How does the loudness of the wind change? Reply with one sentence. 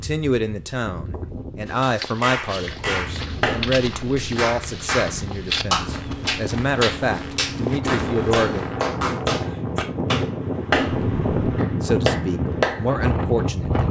The volume of the wind goes up.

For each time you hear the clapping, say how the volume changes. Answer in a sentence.
You can hear the clapping from 1.6 to 12.8 s, at a steady volume.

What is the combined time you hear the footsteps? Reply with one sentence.
The footsteps can be heard for 7 seconds in total.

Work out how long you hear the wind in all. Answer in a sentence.
You can hear the wind for 14 seconds altogether.